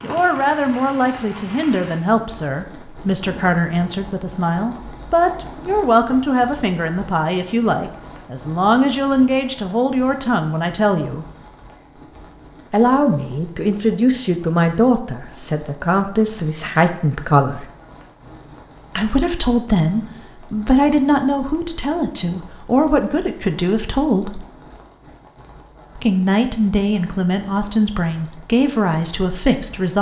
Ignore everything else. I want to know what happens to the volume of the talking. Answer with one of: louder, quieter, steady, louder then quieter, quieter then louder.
steady.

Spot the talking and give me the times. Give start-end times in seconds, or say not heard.
0.0-11.2, 12.7-17.6, 18.9-24.4, 25.9-29.9.